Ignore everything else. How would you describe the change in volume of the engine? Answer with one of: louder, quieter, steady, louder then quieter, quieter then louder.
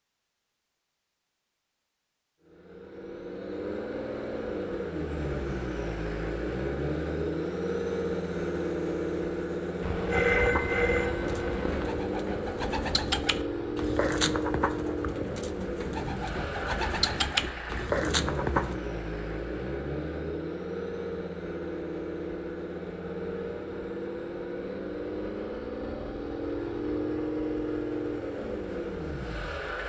steady.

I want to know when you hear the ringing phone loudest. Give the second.
10 s.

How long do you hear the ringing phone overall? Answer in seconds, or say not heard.
2 s.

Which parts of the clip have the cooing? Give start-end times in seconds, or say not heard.
10.2-18.8.